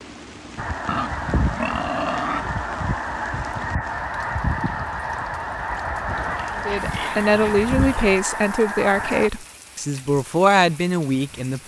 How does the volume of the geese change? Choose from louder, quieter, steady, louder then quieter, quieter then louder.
steady.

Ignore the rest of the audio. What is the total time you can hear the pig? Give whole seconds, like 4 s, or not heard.
4 s.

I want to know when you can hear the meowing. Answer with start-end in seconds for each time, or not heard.
not heard.